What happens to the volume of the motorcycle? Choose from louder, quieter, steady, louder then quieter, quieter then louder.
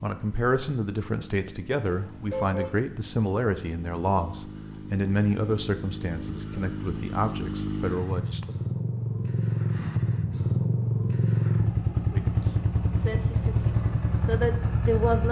louder.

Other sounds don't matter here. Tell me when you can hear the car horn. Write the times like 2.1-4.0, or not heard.
1.9-2.8.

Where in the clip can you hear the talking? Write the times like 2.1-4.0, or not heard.
0.0-8.6, 12.1-15.2.